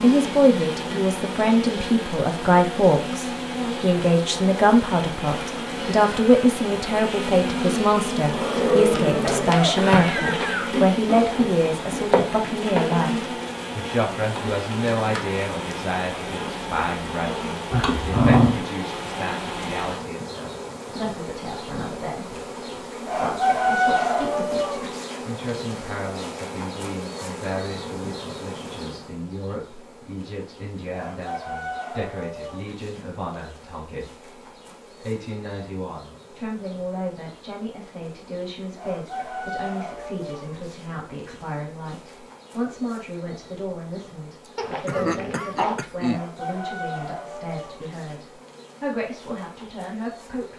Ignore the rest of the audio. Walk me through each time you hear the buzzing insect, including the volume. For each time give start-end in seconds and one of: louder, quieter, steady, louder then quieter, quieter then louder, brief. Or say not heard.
0.0-50.5 quieter.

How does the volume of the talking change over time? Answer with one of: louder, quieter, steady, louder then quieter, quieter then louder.
quieter.